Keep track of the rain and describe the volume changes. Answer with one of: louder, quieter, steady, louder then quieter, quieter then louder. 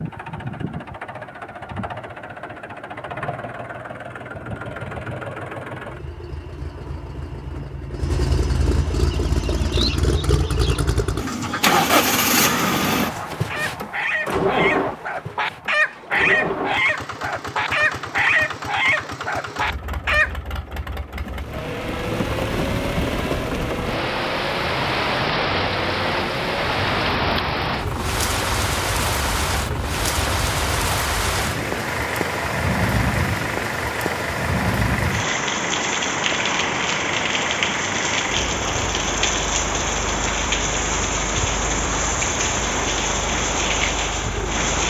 steady.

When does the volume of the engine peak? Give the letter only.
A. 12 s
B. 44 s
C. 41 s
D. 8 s
A.